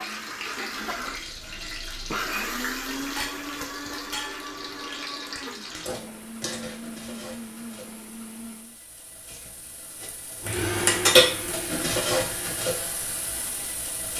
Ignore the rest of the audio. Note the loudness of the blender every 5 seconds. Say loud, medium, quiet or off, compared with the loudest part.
loud, medium, loud.